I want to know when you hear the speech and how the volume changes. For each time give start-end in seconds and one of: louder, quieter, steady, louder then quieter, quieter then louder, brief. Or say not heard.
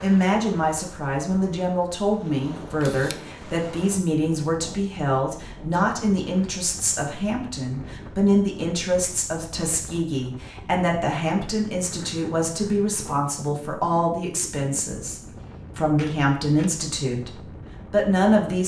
0.0-18.6 steady.